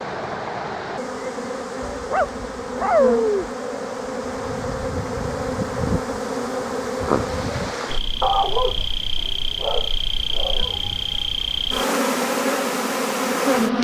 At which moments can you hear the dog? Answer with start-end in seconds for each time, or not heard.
1.9-3.5, 8.2-10.8.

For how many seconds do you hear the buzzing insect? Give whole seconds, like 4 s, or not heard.
14 s.